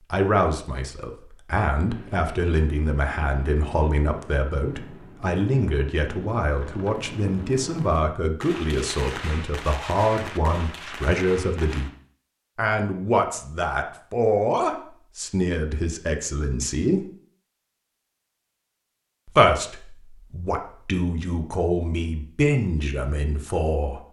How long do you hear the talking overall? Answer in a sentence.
You can hear the talking for 21 seconds altogether.